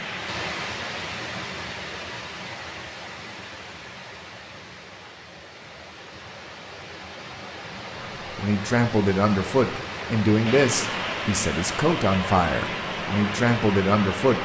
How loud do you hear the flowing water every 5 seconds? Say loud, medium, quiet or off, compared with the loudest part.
medium, medium, loud.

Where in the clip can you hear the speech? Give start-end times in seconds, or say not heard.
8.3-14.4.